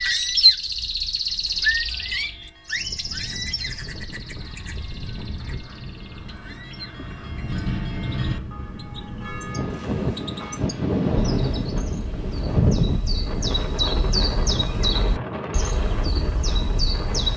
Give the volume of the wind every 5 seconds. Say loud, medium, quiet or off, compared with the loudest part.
quiet, medium, loud, medium.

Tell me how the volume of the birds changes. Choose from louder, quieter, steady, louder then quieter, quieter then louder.
quieter then louder.